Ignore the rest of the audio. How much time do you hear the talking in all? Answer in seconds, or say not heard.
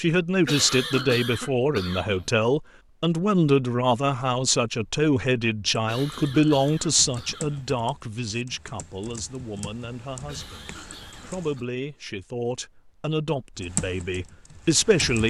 15 s.